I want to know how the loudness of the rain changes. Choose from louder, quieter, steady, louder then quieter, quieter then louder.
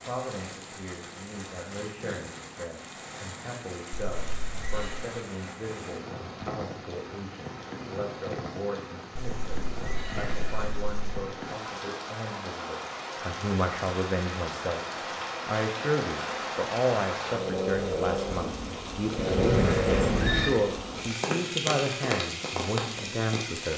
louder.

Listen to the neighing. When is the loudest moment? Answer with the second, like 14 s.
20 s.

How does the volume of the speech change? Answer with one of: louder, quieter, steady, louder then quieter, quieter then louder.
louder.